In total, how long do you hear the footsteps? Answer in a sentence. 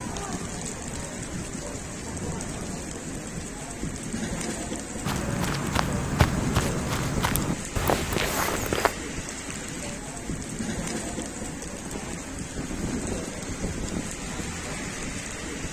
The footsteps can be heard for 4 seconds in total.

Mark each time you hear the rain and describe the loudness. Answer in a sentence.
You can hear the rain from 0.0 to 15.6 s, at a steady volume.